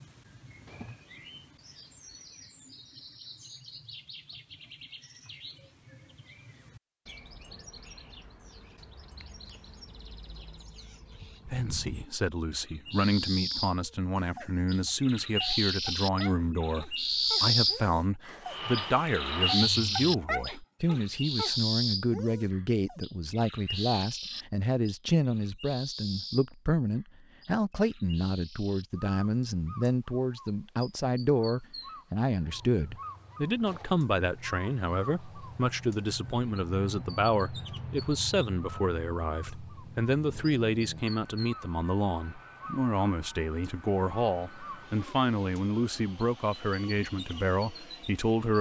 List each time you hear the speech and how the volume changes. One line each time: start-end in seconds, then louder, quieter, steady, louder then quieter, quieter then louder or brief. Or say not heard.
11.4-48.5 steady.